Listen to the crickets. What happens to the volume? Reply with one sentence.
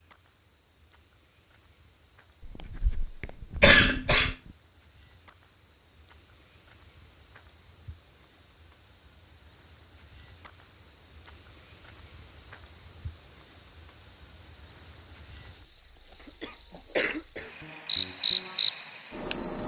The loudness of the crickets goes up.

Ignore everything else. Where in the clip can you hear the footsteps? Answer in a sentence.
The footsteps can't be heard in this clip.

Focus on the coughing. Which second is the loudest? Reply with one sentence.
The volume of the coughing peaks at 4 seconds.